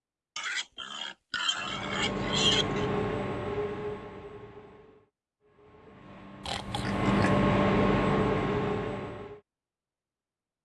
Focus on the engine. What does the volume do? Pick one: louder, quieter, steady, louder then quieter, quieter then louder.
quieter then louder.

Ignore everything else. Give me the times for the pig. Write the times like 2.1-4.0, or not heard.
0.3-2.9, 6.4-7.4.